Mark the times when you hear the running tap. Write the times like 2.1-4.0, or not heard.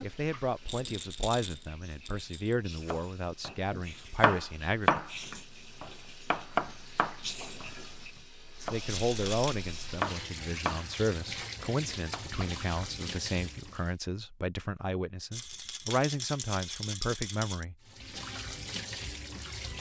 0.0-13.9, 17.8-19.7.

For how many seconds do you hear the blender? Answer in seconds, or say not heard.
not heard.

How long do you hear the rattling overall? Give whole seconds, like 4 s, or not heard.
5 s.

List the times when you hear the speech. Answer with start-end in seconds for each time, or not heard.
0.0-5.0, 8.6-18.2.